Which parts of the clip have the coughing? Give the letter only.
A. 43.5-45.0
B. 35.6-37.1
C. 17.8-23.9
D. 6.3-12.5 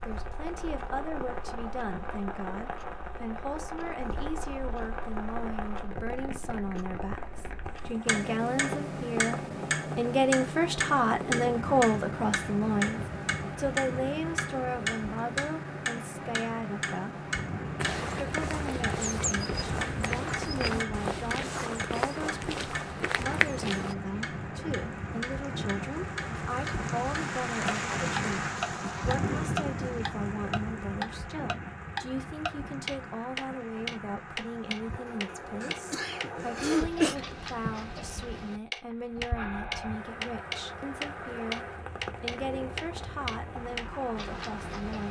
B.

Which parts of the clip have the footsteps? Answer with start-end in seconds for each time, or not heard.
17.8-23.9.